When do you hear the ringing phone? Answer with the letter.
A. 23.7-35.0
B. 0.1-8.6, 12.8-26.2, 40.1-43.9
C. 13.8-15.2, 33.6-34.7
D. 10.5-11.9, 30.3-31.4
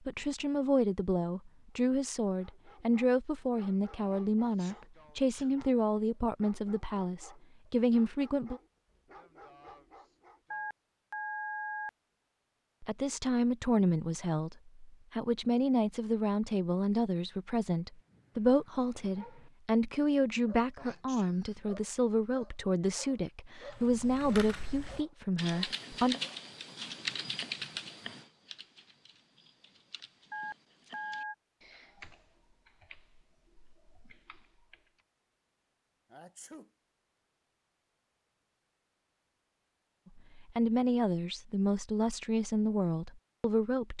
D.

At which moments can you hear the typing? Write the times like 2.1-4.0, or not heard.
23.7-35.0.